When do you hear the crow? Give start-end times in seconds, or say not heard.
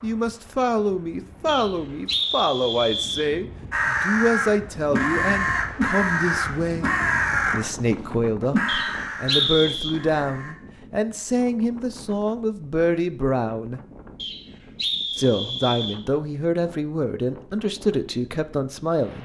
3.7-7.6, 8.5-10.6.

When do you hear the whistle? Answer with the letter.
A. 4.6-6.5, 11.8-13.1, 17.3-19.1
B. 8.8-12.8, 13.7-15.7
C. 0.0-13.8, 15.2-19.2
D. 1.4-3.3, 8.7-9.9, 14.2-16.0
D.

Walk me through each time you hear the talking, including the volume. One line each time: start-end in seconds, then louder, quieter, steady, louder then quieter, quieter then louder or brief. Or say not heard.
0.0-13.8 steady
15.2-19.2 steady.